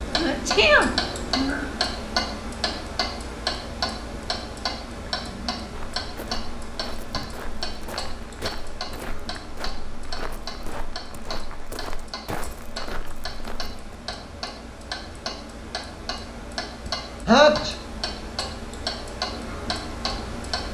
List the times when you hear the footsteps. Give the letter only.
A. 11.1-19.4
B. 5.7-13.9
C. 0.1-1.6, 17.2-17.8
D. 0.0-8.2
B.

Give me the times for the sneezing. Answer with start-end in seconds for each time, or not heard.
0.1-1.6, 17.2-17.8.